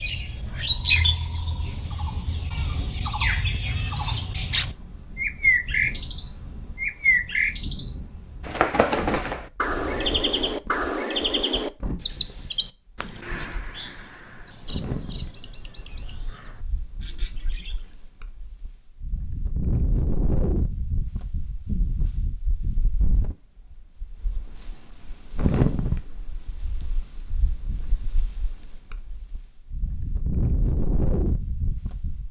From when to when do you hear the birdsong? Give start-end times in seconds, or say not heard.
0.0-17.9.